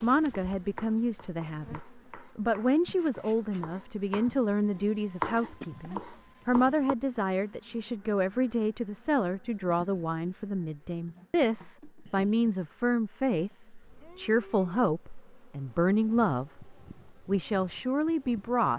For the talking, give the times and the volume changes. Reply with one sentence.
You can hear the talking from 0.0 to 18.7 s, at a steady volume.